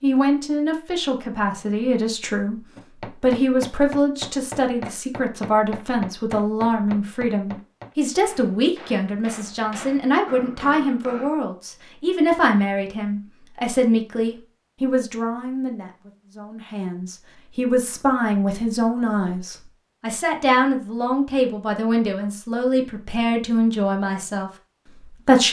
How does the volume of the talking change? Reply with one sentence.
The loudness of the talking stays about the same.